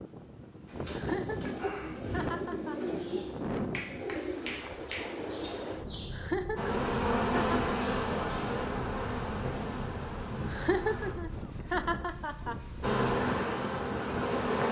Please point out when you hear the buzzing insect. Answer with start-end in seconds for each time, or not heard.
6.5-11.2, 12.8-14.6.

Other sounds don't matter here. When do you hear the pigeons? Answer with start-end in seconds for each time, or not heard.
0.7-6.1.